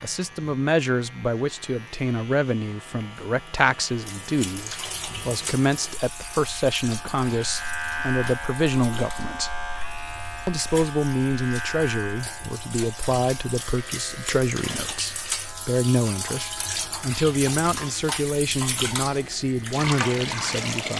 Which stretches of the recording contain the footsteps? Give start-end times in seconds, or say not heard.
not heard.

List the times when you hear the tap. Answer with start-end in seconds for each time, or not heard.
4.0-20.9.